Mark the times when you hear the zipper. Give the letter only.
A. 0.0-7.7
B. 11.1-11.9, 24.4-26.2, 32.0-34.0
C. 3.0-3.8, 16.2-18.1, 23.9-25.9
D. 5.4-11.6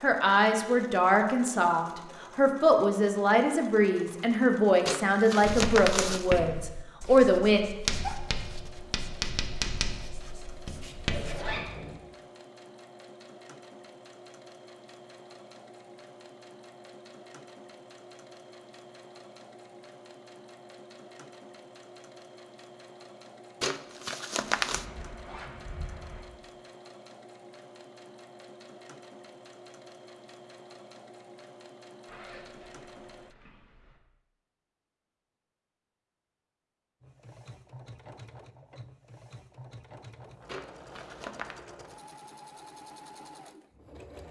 B.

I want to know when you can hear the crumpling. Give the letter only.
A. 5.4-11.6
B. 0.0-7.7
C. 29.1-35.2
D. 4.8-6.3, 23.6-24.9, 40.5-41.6
D.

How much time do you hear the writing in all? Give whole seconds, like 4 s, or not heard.
6 s.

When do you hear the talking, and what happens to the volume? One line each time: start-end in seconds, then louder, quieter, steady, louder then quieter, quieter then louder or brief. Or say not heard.
0.0-7.7 steady.